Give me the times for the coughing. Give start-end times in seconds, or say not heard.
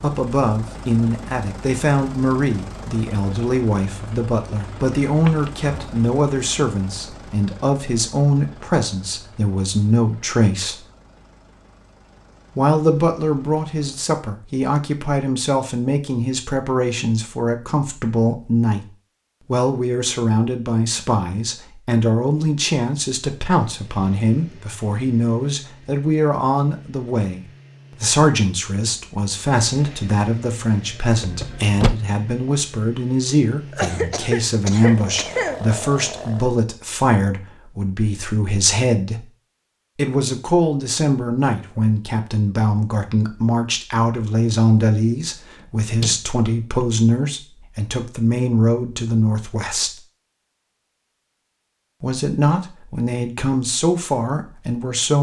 33.7-35.6.